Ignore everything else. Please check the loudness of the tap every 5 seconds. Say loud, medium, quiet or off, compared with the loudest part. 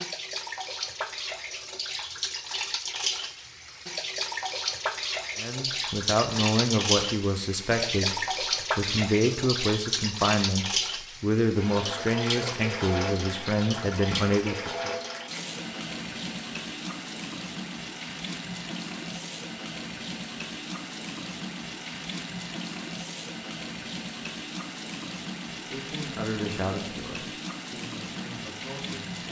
loud, loud, loud, medium, medium, medium.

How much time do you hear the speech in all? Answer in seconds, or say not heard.
13 s.